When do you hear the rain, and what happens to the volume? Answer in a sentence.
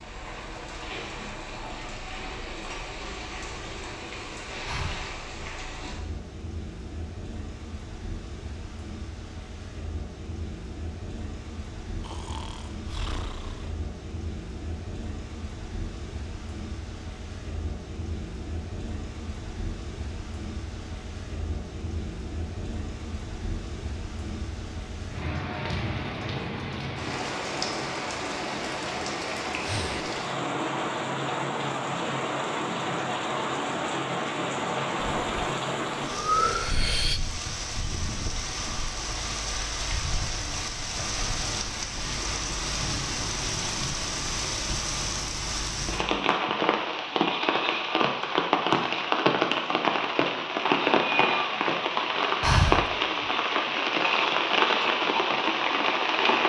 The rain can be heard from 0.0 to 56.4 s, getting louder.